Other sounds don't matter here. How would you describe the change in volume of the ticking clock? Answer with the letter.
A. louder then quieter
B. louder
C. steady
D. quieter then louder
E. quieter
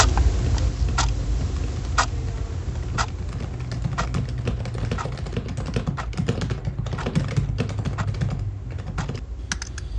E.